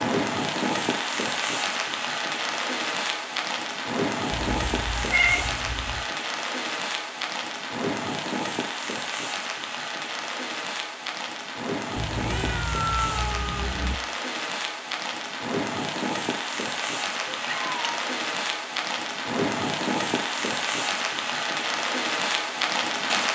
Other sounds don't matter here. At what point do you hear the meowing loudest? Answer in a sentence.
The volume of the meowing peaks at 5 seconds.